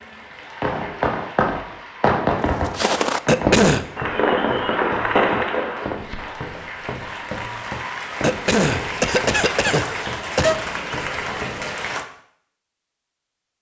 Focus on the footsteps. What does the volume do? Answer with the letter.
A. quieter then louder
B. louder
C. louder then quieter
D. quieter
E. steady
D.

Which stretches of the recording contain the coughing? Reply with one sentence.
The coughing can be heard from 3.2 to 3.9 s and from 8.2 to 10.6 s.